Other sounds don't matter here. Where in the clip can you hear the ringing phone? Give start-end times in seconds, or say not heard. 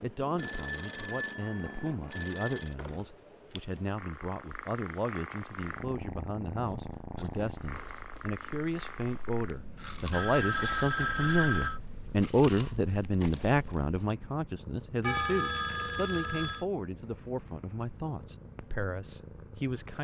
0.3-2.8, 10.1-11.8, 15.0-16.6.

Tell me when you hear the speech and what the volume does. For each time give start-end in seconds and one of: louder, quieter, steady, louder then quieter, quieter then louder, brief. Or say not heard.
0.0-19.9 louder then quieter.